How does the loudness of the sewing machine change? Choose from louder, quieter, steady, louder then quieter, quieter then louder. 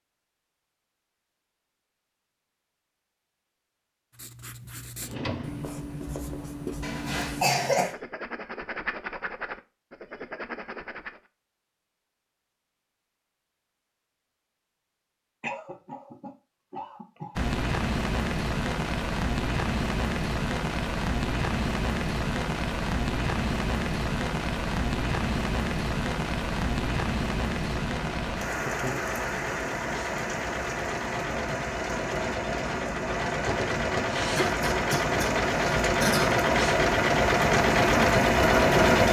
louder.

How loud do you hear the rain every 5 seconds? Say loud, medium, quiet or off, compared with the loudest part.
off, off, off, loud, loud, loud, medium, loud.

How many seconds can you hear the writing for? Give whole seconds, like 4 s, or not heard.
7 s.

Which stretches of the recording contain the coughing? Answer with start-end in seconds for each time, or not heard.
6.8-8.0, 15.4-17.4, 34.4-36.4.